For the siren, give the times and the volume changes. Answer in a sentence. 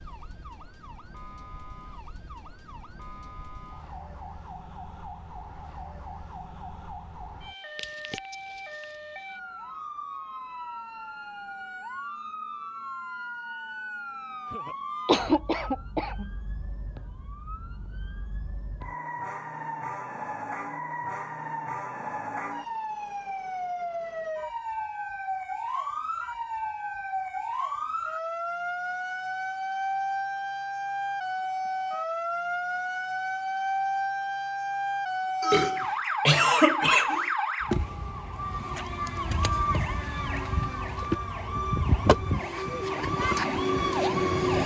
You can hear the siren from 0.0 to 44.6 s, getting louder.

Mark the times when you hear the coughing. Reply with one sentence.
You can hear the coughing from 15.1 to 16.2 s and from 35.4 to 37.3 s.